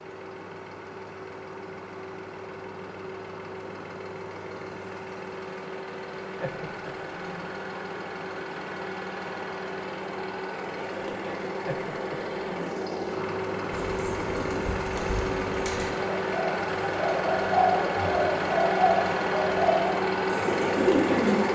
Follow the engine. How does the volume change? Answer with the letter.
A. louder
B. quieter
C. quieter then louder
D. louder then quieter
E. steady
A.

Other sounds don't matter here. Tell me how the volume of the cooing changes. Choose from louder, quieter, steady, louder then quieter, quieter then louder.
louder.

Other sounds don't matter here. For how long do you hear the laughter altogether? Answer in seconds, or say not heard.
2 s.